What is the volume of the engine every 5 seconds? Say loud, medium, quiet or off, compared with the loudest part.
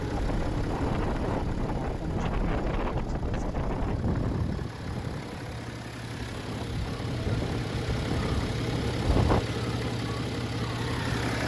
medium, loud, loud.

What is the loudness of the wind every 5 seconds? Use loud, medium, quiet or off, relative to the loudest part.
loud, loud, off.